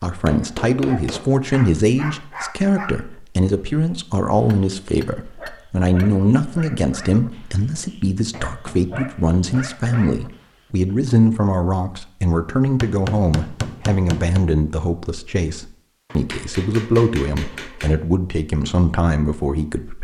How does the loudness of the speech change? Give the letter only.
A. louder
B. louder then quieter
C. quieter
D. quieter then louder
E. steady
E.